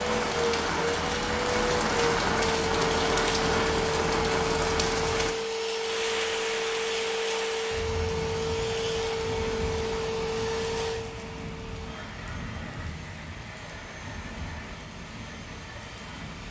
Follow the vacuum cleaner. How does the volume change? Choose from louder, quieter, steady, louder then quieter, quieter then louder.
quieter.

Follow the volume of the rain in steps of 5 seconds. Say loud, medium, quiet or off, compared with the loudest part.
loud, medium, quiet, quiet.